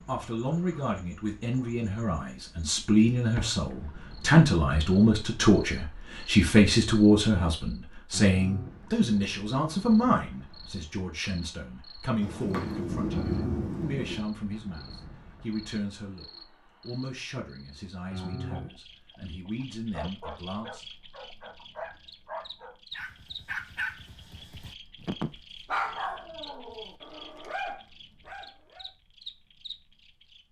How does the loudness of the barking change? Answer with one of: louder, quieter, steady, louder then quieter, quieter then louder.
louder then quieter.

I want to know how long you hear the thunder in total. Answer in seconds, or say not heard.
2 s.